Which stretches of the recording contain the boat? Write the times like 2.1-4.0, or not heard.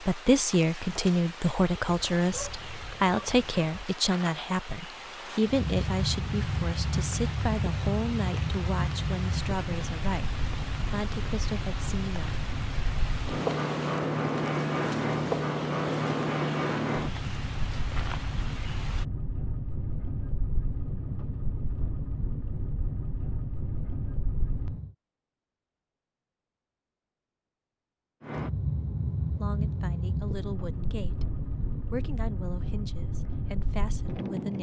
5.4-24.9, 28.2-34.5.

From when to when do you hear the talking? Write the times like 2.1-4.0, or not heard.
0.0-12.4, 29.4-34.5.